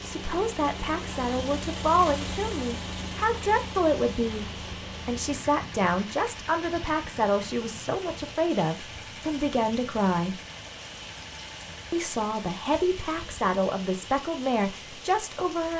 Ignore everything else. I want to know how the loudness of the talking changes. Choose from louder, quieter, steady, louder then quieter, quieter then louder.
steady.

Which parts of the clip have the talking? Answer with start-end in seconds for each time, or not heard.
0.0-10.4, 11.9-15.7.